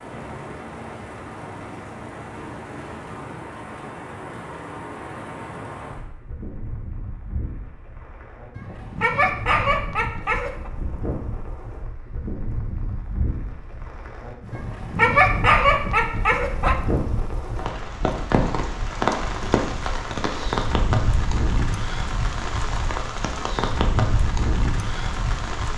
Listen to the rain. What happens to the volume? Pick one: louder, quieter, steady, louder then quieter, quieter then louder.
louder.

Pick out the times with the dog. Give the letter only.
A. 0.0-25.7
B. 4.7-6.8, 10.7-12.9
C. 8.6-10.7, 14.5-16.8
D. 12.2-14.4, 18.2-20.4
C.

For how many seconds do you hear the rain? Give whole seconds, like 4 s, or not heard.
26 s.